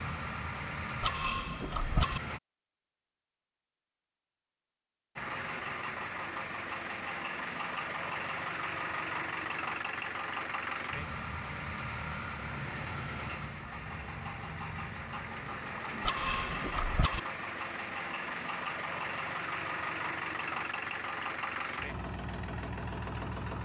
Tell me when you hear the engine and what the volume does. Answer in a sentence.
The engine can be heard briefly from 0.0 to 2.4 s; and from 5.2 to 23.6 s, at a steady volume.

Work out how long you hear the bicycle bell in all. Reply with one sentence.
The bicycle bell can be heard for 2 seconds in total.